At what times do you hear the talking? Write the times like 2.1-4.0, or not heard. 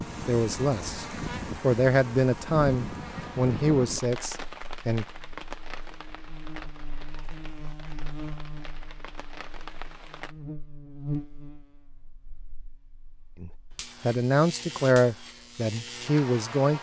0.2-5.0, 13.4-16.7.